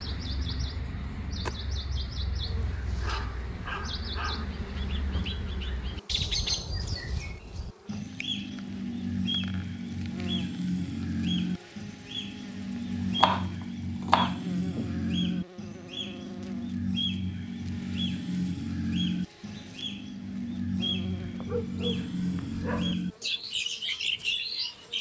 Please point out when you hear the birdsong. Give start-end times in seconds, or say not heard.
0.0-24.9.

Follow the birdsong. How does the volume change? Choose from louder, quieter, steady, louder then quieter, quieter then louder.
louder.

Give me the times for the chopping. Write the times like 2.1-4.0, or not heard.
13.2-14.9.